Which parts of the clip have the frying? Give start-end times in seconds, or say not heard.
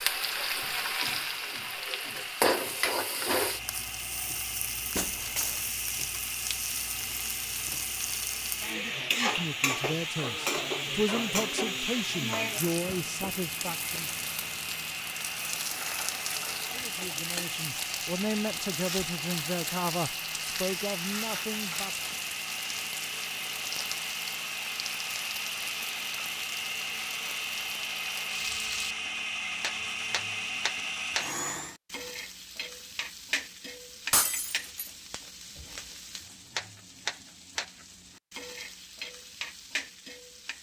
0.0-40.5.